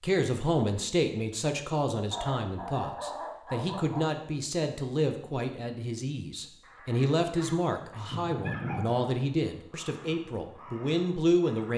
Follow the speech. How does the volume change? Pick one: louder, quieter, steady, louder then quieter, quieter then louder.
steady.